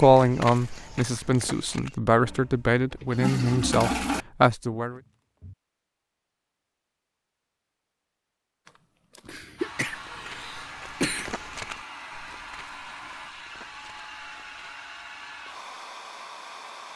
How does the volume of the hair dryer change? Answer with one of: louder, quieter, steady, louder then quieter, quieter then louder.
steady.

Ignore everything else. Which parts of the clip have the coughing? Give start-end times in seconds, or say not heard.
9.2-11.3.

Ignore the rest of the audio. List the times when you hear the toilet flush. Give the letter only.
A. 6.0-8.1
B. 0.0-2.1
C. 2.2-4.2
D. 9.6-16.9
C.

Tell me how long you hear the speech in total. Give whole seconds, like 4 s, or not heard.
5 s.